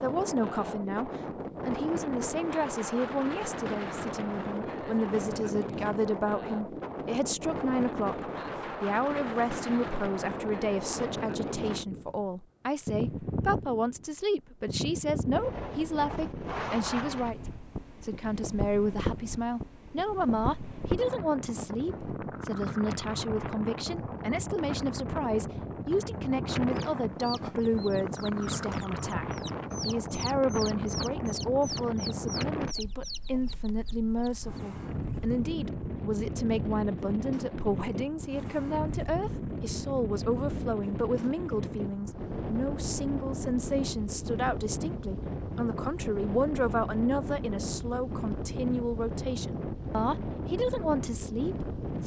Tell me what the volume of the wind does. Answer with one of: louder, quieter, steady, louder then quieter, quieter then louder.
steady.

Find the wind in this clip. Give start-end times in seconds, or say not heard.
0.0-52.0.